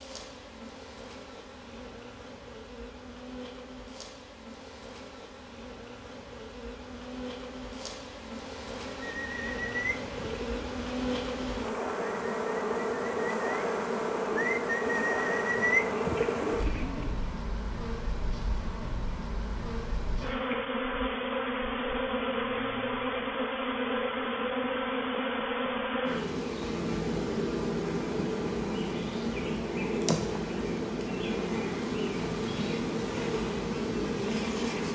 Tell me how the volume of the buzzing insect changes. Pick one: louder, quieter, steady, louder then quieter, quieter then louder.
louder.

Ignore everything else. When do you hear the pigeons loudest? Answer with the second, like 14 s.
16 s.